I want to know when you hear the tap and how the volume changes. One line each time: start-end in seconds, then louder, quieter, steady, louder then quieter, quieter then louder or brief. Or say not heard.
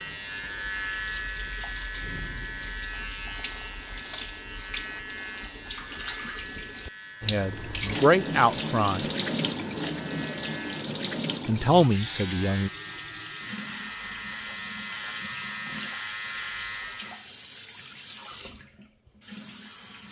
0.0-20.0 louder then quieter.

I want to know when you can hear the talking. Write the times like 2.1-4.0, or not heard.
7.2-9.1, 11.4-12.7.